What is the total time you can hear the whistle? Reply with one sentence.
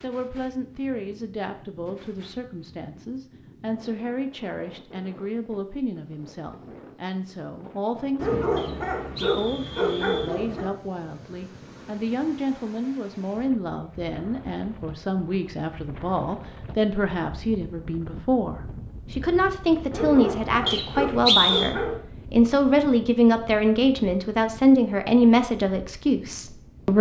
The whistle can be heard for 3 seconds in total.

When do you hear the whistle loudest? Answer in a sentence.
The loudest moment of the whistle is at 21 seconds.